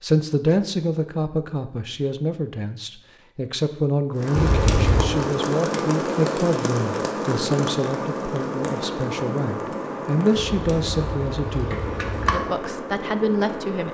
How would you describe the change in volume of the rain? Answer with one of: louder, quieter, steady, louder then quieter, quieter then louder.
quieter.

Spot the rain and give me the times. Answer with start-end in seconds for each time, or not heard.
4.2-13.8.